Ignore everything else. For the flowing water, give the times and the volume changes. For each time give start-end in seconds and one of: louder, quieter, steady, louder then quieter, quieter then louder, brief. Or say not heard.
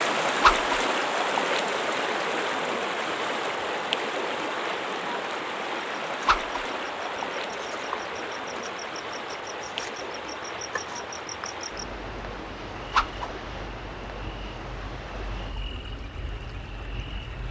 0.0-17.4 quieter.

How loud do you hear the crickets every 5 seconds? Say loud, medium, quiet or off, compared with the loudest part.
off, loud, loud, loud.